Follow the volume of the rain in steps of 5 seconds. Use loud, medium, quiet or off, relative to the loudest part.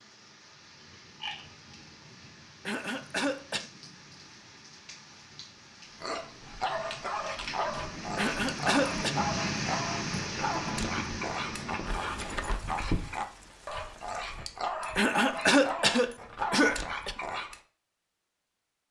quiet, loud, loud, off.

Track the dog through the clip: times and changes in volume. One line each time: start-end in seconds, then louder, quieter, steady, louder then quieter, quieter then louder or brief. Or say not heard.
6.0-17.6 steady.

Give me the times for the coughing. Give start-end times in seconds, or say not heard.
2.6-3.6, 8.2-9.2, 14.9-17.1.